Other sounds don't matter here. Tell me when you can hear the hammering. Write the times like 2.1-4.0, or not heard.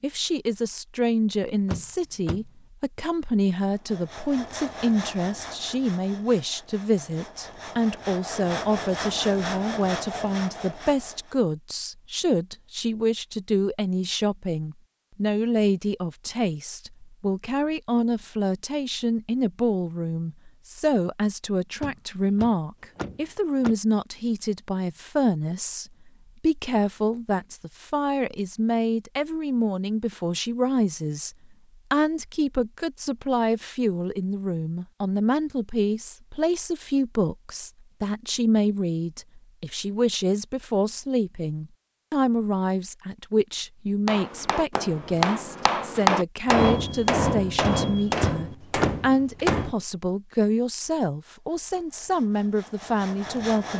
44.0-49.8.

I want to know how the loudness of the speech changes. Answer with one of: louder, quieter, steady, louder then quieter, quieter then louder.
steady.